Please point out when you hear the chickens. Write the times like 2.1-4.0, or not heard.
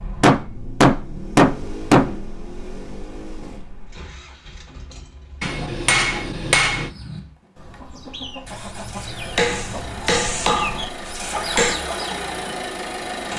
5.4-12.2.